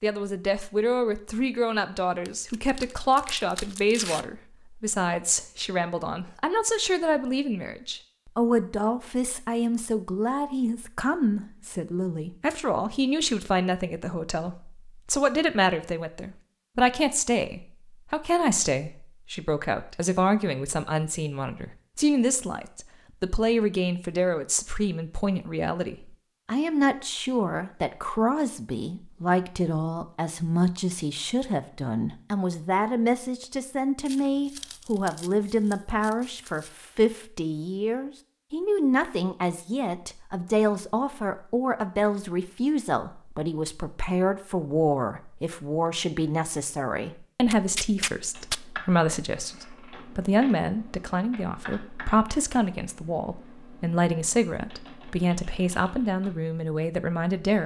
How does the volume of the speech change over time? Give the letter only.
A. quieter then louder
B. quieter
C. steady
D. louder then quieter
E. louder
C.